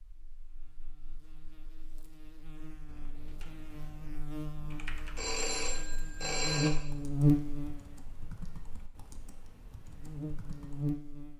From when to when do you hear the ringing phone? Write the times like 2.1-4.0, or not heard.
5.2-6.7.